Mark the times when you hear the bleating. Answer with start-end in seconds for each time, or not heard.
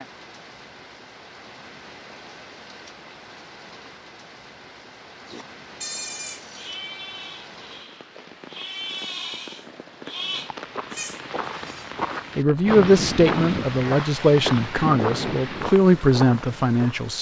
5.2-11.9.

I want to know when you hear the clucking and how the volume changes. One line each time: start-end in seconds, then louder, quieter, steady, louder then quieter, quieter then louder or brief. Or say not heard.
not heard.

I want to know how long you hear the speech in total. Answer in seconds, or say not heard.
5 s.